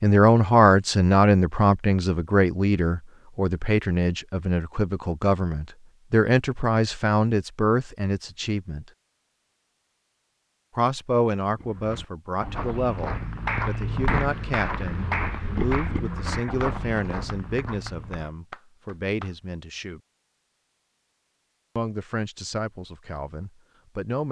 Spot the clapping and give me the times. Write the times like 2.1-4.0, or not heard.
13.1-19.4.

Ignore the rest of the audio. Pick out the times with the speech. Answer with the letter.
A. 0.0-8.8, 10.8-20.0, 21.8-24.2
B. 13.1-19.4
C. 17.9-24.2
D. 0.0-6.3
A.